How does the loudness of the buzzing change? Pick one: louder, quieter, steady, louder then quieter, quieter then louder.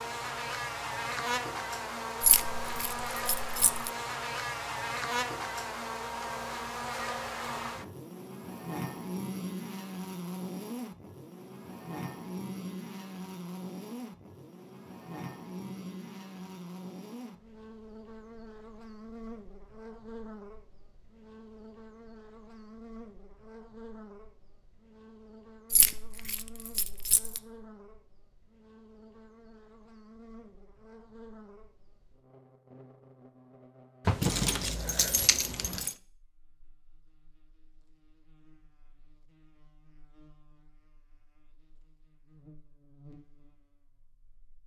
quieter.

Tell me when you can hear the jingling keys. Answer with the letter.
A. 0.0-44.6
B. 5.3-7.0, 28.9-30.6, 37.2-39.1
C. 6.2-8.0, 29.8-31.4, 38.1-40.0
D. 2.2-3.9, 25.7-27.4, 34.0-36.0
D.